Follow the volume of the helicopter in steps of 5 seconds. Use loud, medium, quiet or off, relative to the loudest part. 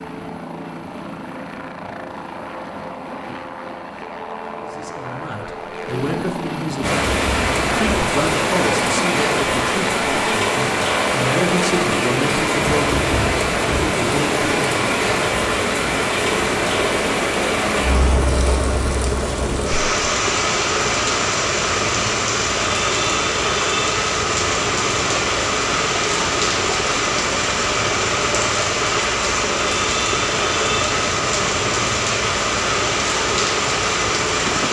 medium, loud, loud, loud, loud, loud, loud.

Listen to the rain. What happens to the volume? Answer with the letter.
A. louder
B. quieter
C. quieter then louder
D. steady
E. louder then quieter
D.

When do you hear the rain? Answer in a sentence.
The rain can be heard from 6.8 to 34.6 s.